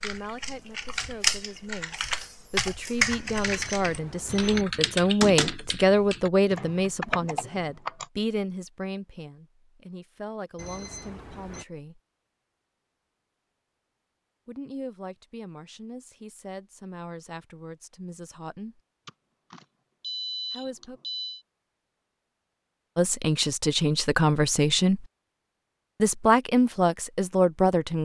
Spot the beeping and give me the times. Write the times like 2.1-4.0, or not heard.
3.3-4.7, 10.6-11.7, 19.1-21.4.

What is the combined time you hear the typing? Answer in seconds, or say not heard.
8 s.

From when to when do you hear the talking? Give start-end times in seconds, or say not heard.
0.0-12.0, 14.4-18.8, 20.5-21.0, 22.9-25.1, 26.0-28.0.